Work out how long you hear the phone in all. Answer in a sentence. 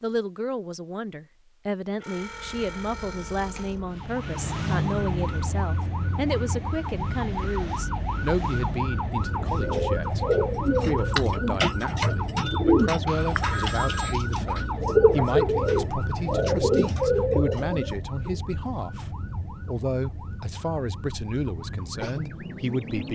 You can hear the phone for 3 seconds altogether.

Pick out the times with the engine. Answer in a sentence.
The engine can be heard from 2.1 to 10.8 s.